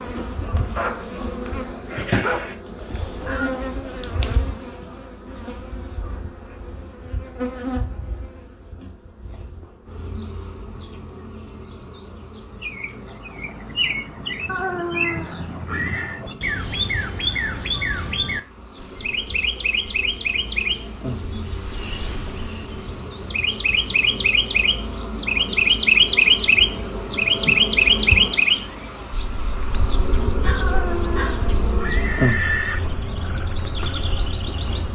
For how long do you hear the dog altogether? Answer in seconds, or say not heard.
3 s.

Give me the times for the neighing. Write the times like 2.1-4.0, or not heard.
3.0-3.5, 14.4-16.2, 30.6-32.8.